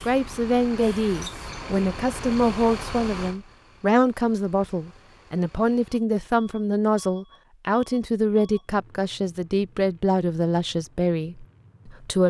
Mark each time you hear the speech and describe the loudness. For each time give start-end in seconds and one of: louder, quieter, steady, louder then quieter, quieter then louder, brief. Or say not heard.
0.0-12.2 steady.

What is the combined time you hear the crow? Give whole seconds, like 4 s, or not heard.
not heard.